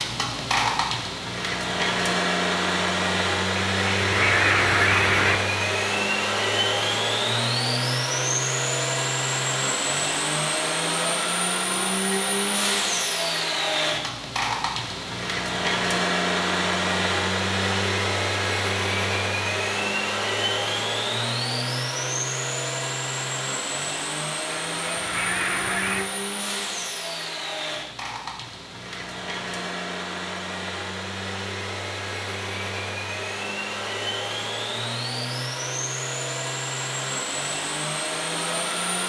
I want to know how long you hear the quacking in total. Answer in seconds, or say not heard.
3 s.